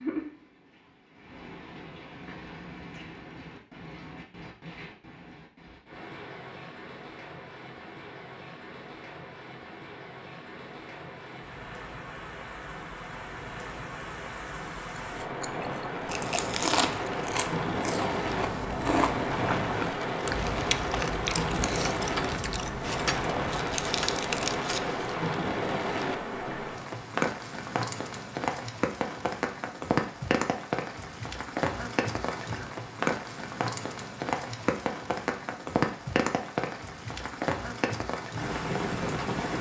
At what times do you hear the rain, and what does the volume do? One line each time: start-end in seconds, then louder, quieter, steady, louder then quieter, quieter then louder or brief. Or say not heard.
0.0-39.5 louder.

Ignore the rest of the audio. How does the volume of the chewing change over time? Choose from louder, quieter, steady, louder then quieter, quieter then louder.
steady.